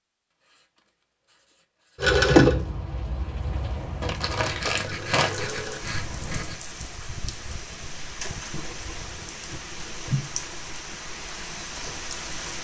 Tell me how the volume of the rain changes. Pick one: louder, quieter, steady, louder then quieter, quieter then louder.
louder.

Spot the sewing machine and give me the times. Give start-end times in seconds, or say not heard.
2.0-5.8.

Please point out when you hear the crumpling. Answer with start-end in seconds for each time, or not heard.
4.0-5.5.